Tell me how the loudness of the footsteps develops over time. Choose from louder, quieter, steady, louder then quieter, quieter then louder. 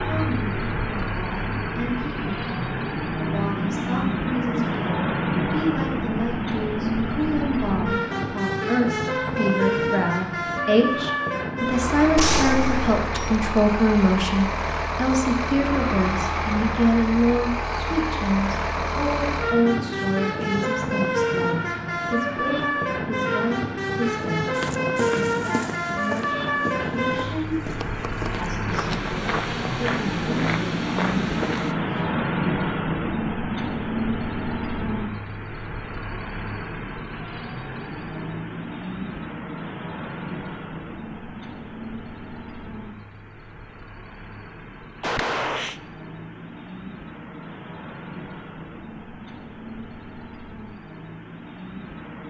quieter then louder.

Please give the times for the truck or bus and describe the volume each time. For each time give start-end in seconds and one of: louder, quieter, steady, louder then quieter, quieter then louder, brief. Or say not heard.
0.0-52.2 quieter.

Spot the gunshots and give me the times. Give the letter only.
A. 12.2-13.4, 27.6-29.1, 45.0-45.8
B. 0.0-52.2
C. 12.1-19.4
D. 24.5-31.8
A.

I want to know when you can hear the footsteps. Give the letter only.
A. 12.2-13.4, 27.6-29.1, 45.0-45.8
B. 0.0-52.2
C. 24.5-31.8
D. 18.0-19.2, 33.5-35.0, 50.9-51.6
C.